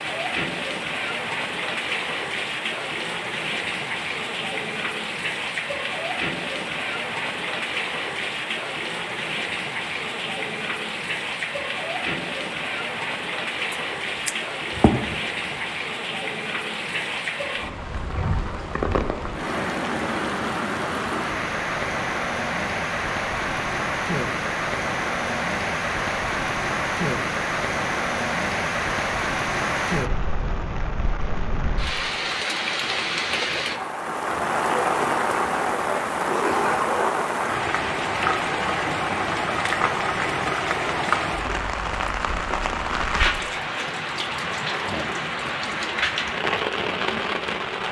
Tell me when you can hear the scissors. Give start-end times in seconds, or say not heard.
13.7-15.2.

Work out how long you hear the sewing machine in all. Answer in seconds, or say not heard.
not heard.